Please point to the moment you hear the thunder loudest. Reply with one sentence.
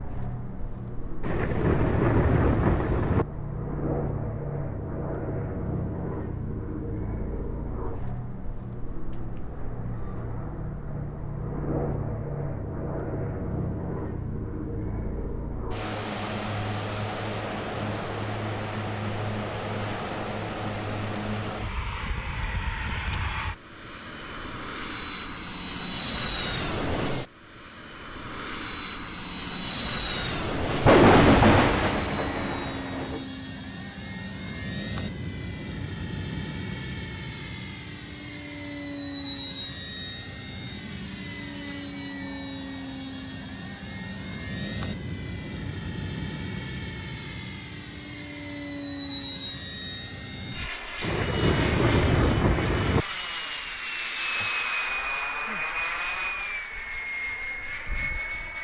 The volume of the thunder peaks at 31 seconds.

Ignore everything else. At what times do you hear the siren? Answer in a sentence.
The siren can't be heard in this clip.